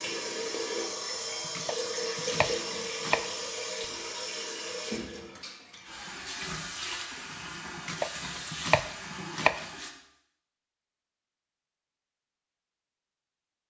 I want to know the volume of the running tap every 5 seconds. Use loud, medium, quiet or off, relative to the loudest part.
loud, medium, off.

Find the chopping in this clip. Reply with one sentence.
You can hear the chopping from 1.4 to 3.4 s and from 7.8 to 9.7 s.